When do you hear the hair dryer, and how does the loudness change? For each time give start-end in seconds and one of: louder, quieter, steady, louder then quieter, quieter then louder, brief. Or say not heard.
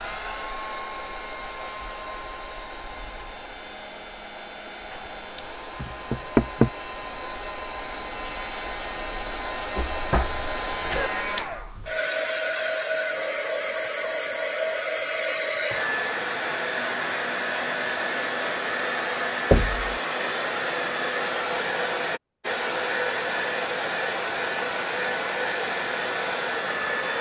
0.0-27.1 louder.